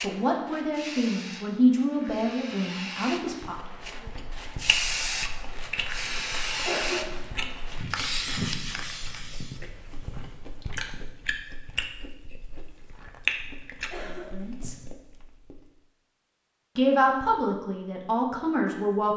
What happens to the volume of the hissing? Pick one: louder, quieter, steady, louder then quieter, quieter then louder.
louder.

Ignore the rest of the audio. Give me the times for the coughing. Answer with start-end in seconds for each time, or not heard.
6.7-7.5, 13.9-14.4.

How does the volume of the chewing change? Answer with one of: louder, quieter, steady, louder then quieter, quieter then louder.
quieter then louder.